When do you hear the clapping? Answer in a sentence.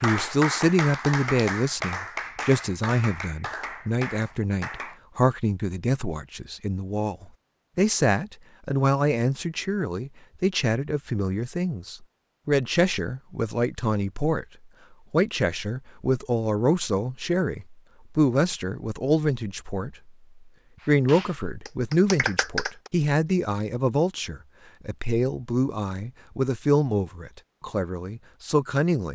You can hear the clapping from 0.0 to 5.0 s and from 20.8 to 22.9 s.